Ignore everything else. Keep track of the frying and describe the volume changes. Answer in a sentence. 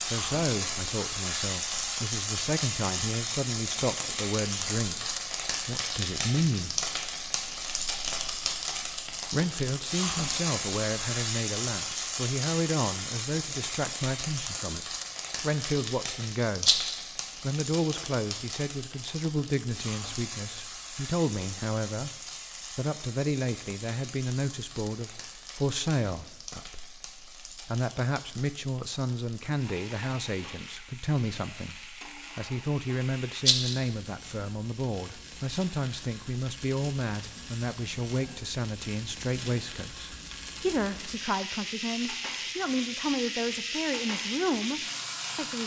The volume of the frying goes down, then up.